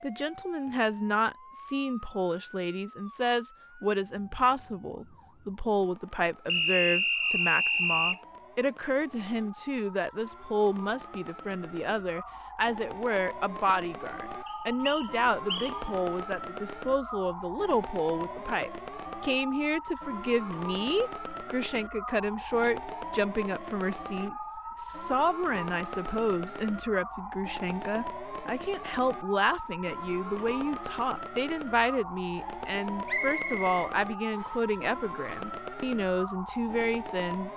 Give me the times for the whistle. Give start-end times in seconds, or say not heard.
6.5-8.2, 14.4-15.8, 33.0-34.6.